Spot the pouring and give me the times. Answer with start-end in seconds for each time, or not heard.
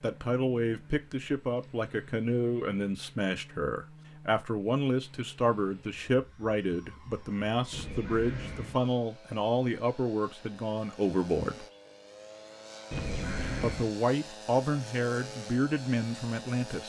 0.7-1.8, 7.7-8.8, 12.9-13.9.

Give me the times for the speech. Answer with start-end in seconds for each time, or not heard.
0.0-11.7, 13.6-16.8.